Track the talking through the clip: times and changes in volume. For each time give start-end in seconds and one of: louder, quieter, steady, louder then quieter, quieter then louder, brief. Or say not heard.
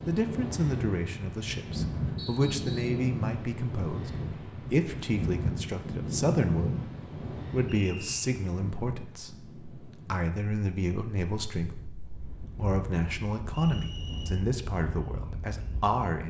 0.1-16.2 steady.